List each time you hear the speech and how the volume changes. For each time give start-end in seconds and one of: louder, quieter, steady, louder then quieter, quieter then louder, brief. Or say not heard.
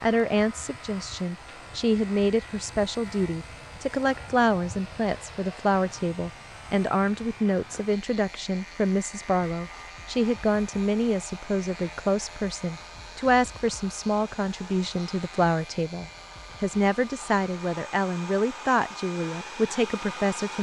0.0-20.5 steady.